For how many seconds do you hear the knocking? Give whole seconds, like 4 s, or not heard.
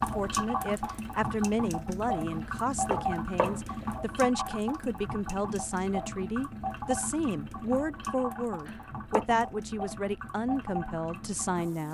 2 s.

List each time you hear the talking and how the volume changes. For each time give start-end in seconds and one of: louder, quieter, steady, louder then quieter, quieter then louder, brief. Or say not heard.
0.0-11.8 steady.